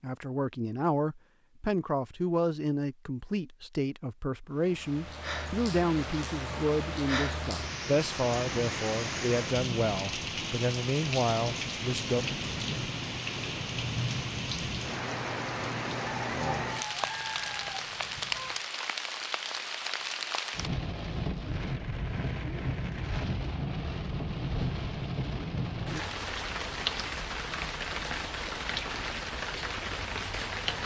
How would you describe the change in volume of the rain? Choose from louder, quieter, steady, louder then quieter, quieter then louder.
steady.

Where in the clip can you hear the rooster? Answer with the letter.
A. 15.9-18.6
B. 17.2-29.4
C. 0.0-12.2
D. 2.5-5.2
A.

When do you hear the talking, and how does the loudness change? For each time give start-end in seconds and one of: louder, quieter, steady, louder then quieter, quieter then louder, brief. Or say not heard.
0.0-12.2 steady.